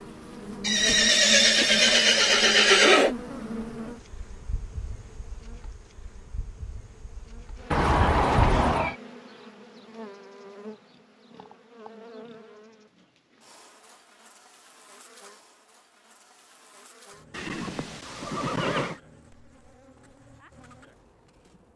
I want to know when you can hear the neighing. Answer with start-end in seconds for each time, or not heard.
0.6-3.1, 7.7-8.9, 17.3-19.0.